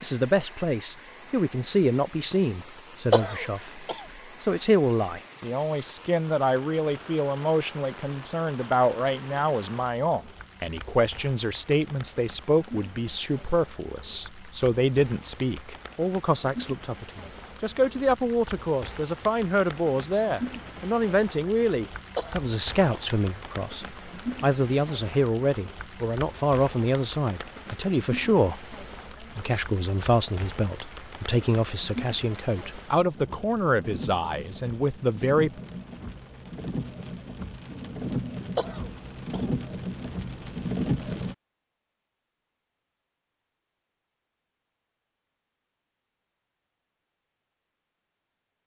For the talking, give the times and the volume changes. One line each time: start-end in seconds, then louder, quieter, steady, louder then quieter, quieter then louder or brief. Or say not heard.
0.0-35.5 steady.